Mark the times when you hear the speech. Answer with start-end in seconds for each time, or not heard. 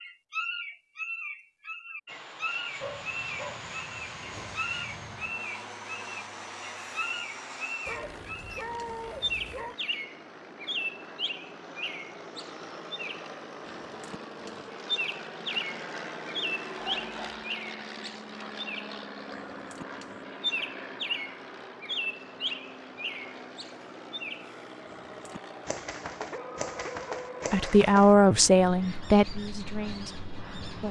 27.5-30.8.